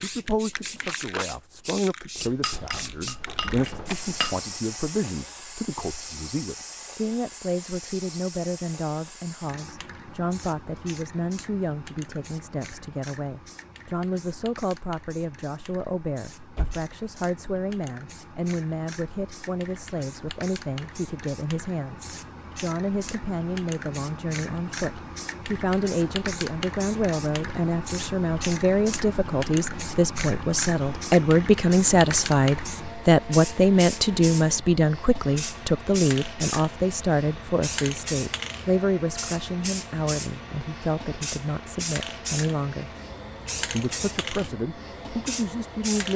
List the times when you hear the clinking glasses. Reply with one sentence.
The clinking glasses can be heard from 2.1 to 4.4 s.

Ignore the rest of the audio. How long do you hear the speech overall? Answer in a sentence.
The speech can be heard for 45 seconds in total.